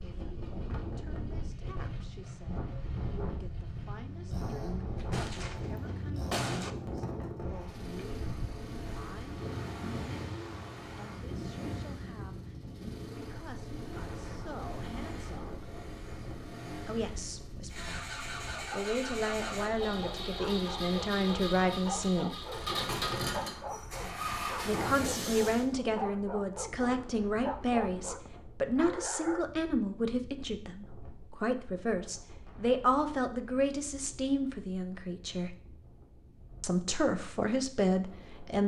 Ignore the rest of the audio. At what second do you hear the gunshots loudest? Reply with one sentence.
The volume of the gunshots peaks at 6 seconds.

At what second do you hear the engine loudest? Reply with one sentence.
The volume of the engine peaks at 23 seconds.